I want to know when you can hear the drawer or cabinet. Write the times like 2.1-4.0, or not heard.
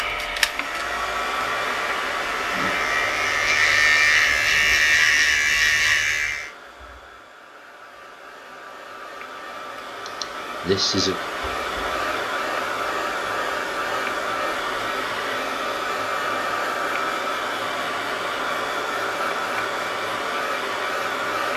not heard.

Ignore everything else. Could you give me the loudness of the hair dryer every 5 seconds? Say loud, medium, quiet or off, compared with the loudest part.
loud, quiet, loud, loud, loud.